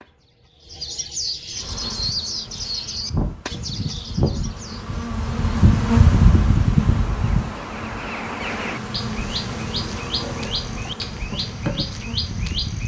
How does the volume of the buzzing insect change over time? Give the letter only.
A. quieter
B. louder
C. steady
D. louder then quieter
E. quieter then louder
D.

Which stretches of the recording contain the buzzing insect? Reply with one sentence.
You can hear the buzzing insect from 1.6 to 12.8 s.